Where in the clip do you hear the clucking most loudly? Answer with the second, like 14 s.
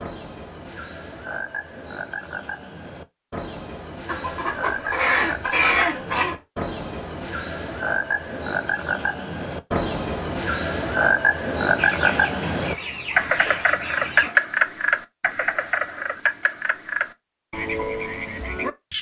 6 s.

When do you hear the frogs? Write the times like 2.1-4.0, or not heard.
0.0-18.9.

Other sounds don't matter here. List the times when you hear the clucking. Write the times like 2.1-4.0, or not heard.
4.0-6.3, 11.8-14.4.